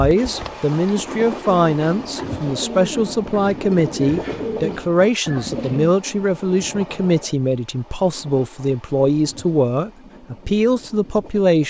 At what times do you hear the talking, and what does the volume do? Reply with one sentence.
The talking can be heard from 0.0 to 11.6 s, at a steady volume.